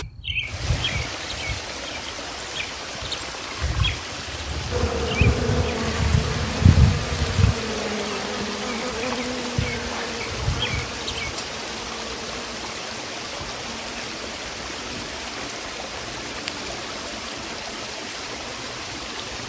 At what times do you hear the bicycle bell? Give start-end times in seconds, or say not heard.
not heard.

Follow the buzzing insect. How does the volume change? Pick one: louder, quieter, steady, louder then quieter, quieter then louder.
quieter.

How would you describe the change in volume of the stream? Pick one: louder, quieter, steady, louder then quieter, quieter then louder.
steady.